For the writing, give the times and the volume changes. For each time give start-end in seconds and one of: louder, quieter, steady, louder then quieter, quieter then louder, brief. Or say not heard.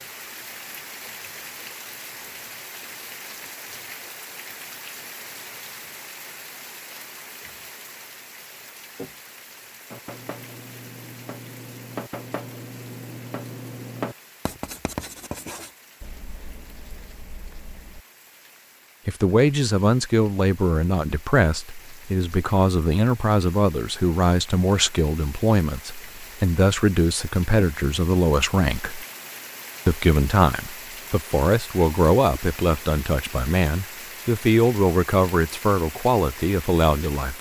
9.9-18.1 louder then quieter.